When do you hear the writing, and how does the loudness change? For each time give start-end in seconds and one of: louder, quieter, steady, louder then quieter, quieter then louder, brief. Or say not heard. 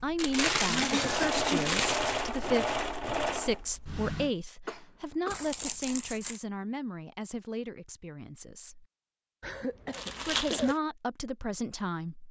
not heard.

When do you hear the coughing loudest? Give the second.
1 s.